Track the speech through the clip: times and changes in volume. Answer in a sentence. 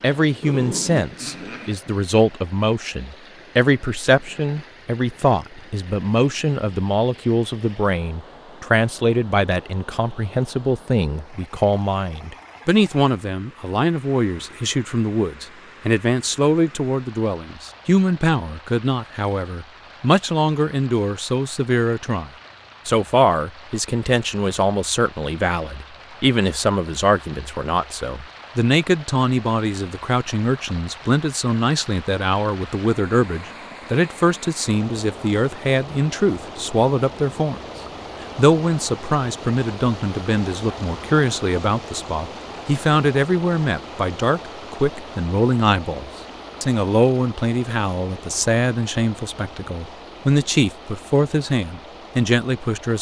The speech can be heard from 0.0 to 37.6 s, at a steady volume; and from 38.4 to 52.9 s, at a steady volume.